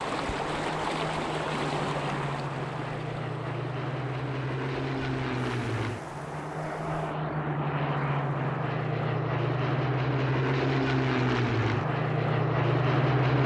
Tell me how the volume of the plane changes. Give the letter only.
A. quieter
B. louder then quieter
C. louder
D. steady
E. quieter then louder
C.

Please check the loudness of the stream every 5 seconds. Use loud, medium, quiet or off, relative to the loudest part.
loud, quiet, off.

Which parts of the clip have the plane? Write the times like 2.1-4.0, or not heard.
0.0-13.4.